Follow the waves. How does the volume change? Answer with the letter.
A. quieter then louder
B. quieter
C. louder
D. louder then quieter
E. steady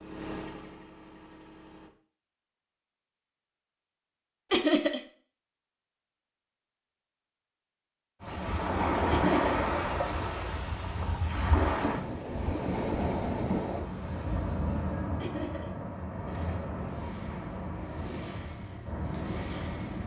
B.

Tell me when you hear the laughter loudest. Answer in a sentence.
The volume of the laughter peaks at 5 seconds.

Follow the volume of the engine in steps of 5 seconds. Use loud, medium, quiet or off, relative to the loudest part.
loud, off, off, loud.